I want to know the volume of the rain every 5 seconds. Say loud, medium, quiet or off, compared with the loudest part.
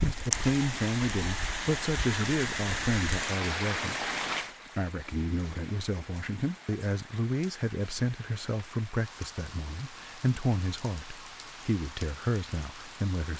loud, quiet, quiet.